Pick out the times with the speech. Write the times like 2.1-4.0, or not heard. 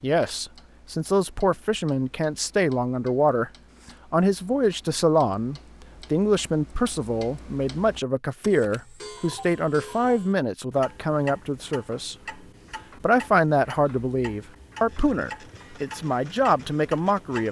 0.0-3.5, 4.1-12.2, 13.0-17.4.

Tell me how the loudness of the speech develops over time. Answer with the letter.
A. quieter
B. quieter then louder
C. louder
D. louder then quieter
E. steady
E.